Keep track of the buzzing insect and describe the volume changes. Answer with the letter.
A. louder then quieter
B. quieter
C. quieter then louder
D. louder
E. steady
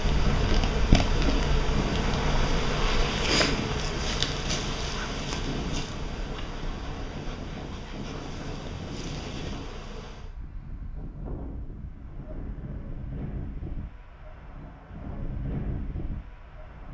B.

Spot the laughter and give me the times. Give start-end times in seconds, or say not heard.
not heard.